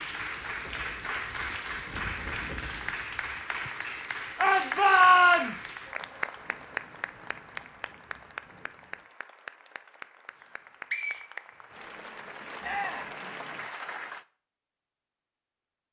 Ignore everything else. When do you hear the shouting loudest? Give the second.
5 s.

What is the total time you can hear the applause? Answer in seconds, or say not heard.
14 s.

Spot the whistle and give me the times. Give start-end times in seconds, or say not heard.
10.3-12.0.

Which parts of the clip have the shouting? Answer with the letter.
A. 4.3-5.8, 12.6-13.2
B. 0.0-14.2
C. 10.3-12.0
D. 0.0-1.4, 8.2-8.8
A.